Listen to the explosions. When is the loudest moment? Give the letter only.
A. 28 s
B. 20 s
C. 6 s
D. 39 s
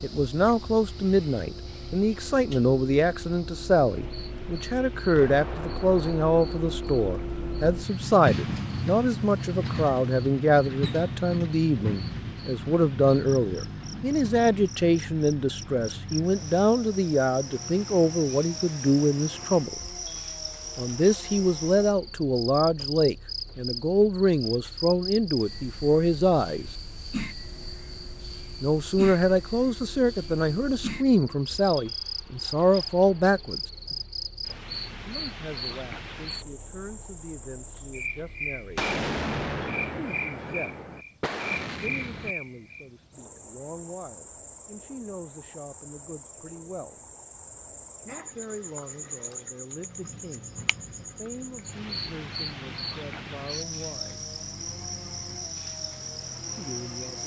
D.